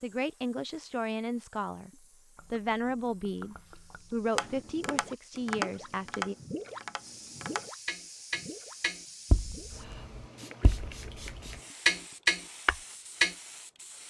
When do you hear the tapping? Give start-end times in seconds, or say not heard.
4.3-13.3.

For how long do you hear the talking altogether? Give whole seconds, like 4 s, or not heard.
6 s.